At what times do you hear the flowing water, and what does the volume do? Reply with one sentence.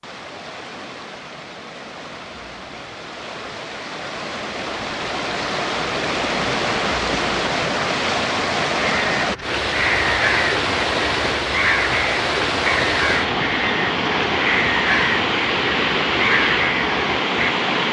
The flowing water can be heard from 0.0 to 17.8 s, getting louder.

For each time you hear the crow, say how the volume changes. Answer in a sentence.
You can hear the crow from 8.8 to 17.6 s, at a steady volume.